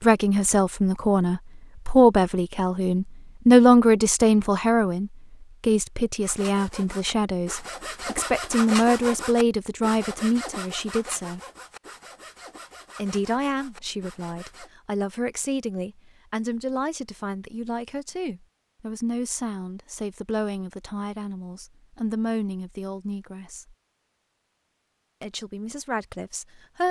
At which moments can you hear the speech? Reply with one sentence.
The speech can be heard from 0.0 to 11.4 s, from 12.9 to 23.8 s and from 25.2 to 26.8 s.